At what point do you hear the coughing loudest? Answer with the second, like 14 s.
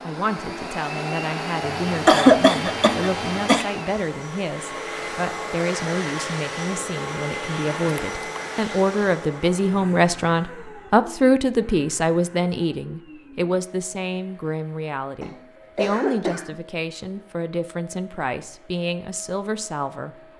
2 s.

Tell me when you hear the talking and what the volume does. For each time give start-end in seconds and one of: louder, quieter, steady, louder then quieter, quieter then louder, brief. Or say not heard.
0.0-20.1 louder then quieter.